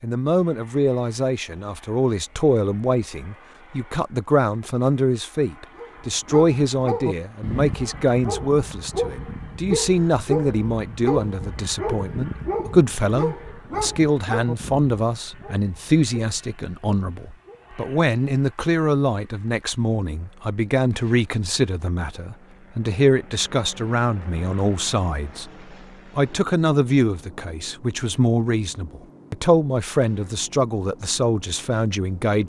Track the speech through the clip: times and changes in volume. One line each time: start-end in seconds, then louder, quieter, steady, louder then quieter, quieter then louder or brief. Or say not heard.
0.0-32.4 steady.